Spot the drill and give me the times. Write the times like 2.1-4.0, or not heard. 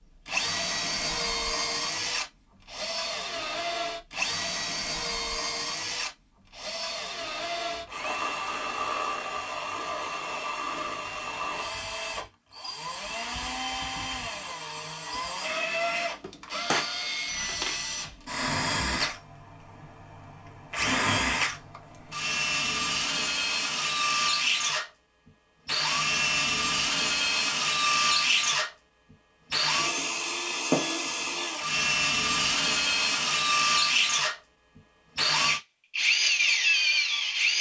0.2-37.5.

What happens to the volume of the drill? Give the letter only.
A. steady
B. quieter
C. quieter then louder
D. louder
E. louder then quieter
D.